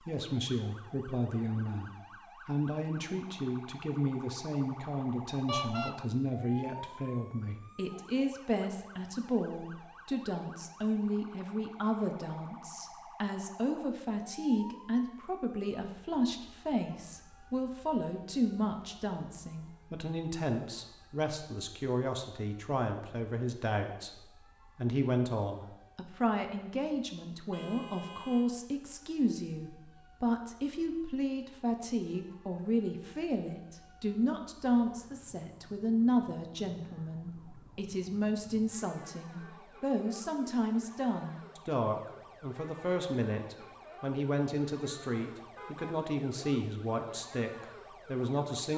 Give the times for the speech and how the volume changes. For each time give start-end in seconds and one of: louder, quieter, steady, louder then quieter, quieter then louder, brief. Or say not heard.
0.1-48.7 steady.